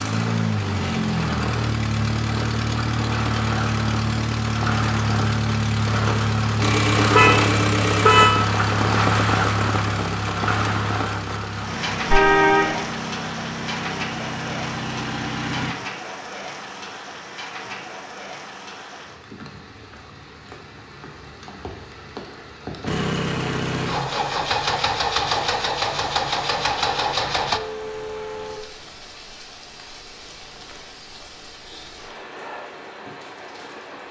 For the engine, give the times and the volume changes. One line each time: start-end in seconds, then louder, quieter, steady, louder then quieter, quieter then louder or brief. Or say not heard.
0.0-15.8 quieter
22.9-27.6 steady.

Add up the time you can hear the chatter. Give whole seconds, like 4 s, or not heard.
not heard.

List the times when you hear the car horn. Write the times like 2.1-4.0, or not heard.
6.6-8.3, 12.1-12.8, 27.6-28.6.